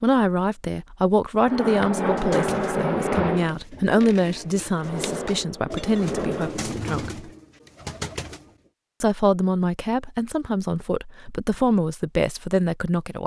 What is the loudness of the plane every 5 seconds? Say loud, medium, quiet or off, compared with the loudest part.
loud, medium, off.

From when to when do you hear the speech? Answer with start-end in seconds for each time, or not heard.
0.0-7.3, 9.0-13.2.